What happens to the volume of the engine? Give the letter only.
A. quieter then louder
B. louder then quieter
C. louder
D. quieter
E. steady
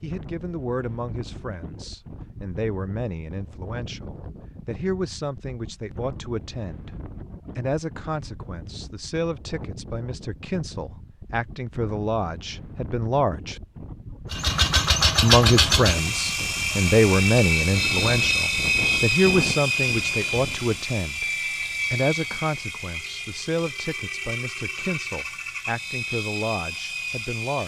D.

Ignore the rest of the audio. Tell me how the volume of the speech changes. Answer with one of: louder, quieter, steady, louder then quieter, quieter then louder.
louder then quieter.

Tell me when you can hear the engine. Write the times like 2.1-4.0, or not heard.
14.3-27.6.